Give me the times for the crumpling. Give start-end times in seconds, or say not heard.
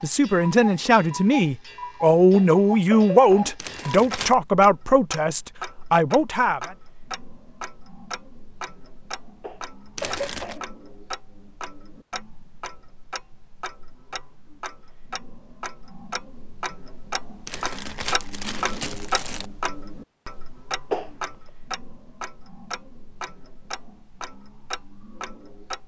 3.5-4.3, 9.9-10.6, 17.4-19.4.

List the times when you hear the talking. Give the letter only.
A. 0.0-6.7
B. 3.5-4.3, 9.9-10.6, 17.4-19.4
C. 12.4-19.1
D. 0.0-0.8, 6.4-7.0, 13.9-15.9
A.